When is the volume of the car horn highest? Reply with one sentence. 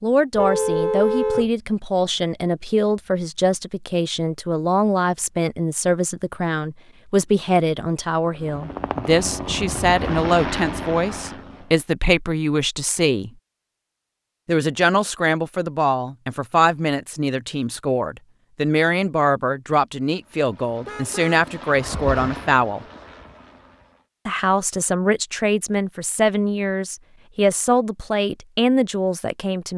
The loudest moment of the car horn is at 1 second.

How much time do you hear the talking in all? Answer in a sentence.
You can hear the talking for 27 seconds altogether.